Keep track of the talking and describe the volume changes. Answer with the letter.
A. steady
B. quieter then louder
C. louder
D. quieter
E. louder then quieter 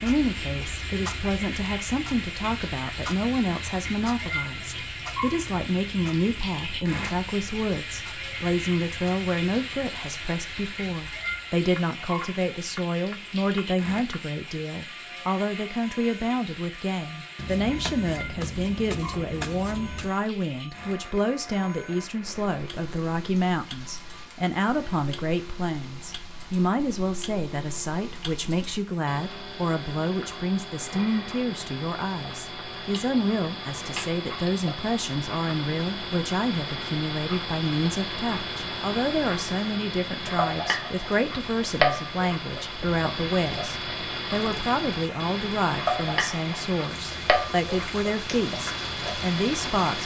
A.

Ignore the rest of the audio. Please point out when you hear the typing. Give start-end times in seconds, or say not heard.
not heard.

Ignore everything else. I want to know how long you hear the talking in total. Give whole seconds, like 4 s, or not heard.
50 s.